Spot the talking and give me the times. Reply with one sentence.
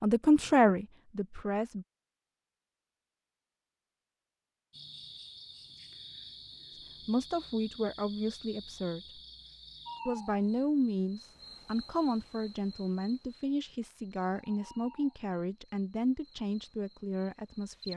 You can hear the talking from 0.0 to 1.9 s, from 7.0 to 9.2 s and from 10.1 to 17.9 s.